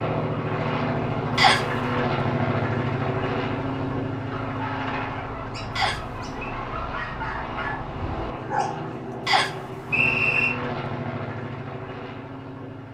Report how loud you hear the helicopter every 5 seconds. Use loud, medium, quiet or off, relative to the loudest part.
loud, medium, medium.